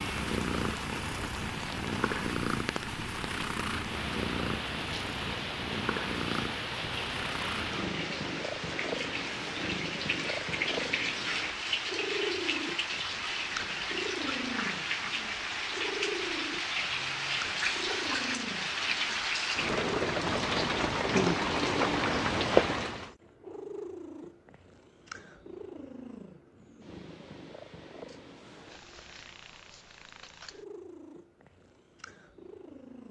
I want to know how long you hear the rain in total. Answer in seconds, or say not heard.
23 s.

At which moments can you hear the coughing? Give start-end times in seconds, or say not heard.
not heard.